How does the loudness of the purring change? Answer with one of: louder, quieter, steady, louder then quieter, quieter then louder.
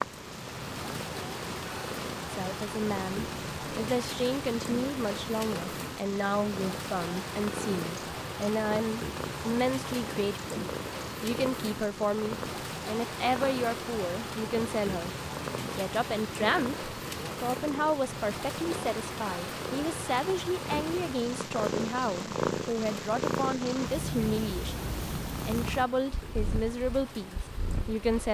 louder.